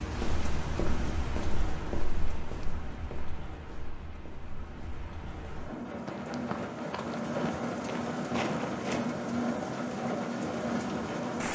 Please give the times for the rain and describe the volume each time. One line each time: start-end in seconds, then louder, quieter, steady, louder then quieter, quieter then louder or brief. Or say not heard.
0.0-11.5 quieter then louder.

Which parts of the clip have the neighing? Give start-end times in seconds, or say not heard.
not heard.